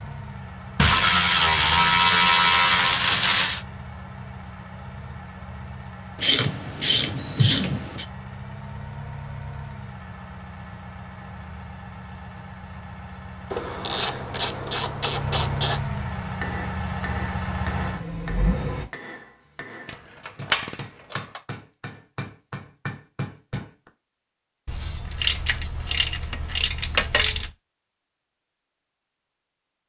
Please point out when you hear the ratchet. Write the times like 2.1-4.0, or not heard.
0.8-3.6, 6.2-8.1, 13.5-15.8, 19.9-21.4, 24.6-27.5.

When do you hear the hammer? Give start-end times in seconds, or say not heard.
16.2-23.9.